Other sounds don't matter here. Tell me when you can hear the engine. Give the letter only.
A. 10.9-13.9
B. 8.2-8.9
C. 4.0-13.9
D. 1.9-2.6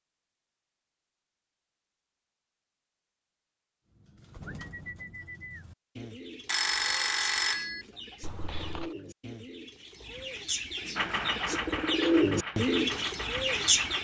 A.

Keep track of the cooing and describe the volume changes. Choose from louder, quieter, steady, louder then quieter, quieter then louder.
louder.